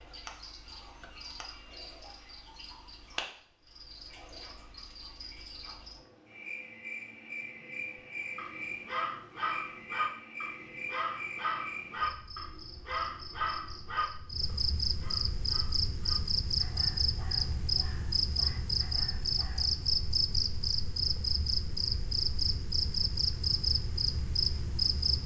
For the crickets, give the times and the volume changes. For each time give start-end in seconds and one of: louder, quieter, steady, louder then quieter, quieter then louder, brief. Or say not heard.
0.0-25.2 louder.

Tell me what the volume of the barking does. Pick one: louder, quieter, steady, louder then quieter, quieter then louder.
quieter.